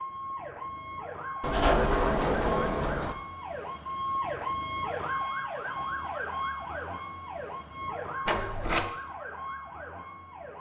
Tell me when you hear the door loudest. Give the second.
2 s.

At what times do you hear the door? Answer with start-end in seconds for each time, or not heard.
1.4-3.1, 8.2-8.9.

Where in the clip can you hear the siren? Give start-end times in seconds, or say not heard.
0.0-10.5.